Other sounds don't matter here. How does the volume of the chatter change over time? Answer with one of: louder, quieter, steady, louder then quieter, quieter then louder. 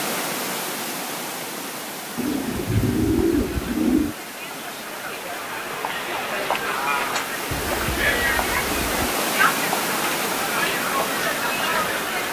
louder.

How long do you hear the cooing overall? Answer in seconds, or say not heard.
4 s.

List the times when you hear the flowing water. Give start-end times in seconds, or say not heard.
0.0-12.2.